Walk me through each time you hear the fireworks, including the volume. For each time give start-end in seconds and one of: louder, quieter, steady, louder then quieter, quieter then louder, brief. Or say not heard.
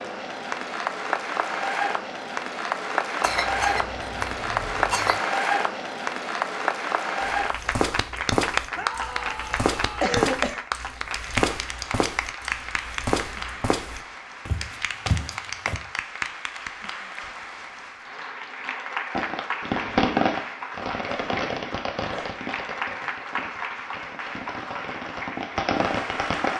19.1-26.5 quieter then louder.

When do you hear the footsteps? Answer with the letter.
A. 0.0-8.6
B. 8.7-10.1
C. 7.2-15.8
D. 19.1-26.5
C.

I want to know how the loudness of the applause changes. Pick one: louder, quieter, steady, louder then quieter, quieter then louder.
quieter.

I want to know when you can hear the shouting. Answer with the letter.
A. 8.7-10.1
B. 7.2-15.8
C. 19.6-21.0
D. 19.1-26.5
A.